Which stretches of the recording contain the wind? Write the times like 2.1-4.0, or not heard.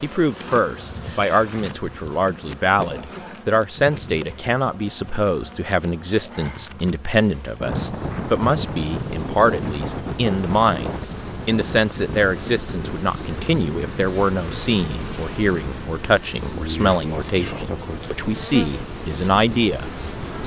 7.6-20.4.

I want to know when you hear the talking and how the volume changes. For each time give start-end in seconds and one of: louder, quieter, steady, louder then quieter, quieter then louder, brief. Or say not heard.
0.0-20.4 steady.